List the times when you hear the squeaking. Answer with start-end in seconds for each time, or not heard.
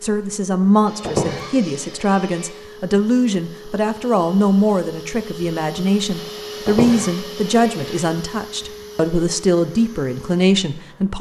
1.0-1.5, 6.7-7.2.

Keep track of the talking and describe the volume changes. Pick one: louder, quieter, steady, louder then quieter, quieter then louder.
steady.